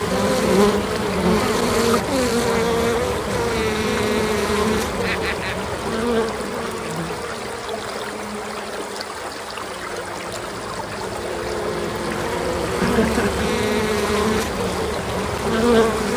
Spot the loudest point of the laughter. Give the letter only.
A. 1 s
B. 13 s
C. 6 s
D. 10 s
B.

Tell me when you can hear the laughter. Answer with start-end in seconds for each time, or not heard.
5.0-5.5, 12.8-13.4.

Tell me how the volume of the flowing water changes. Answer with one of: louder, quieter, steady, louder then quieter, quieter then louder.
steady.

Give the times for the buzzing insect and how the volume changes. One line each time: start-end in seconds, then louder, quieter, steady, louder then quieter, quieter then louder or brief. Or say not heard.
0.0-16.1 quieter then louder.